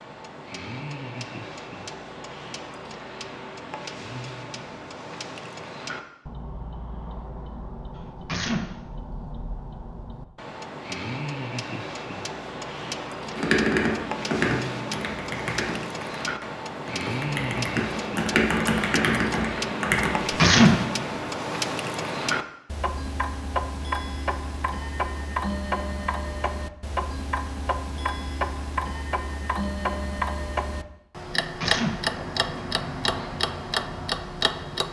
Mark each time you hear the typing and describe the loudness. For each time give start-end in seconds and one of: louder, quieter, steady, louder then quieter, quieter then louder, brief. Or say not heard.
13.3-20.2 quieter then louder.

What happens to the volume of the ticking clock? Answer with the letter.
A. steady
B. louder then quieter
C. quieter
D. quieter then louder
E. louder
E.